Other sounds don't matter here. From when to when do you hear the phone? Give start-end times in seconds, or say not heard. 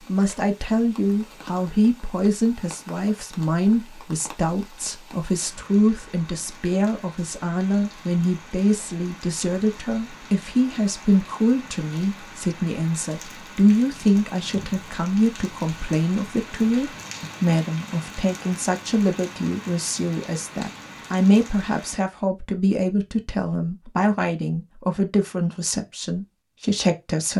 not heard.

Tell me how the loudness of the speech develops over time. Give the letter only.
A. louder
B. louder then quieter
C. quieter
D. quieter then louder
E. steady
E.